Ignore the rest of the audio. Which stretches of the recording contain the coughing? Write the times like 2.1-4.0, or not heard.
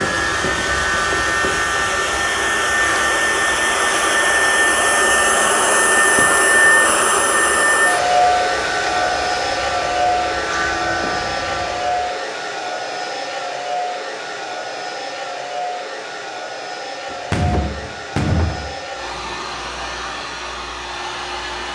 not heard.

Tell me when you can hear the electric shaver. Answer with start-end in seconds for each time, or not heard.
0.0-12.1.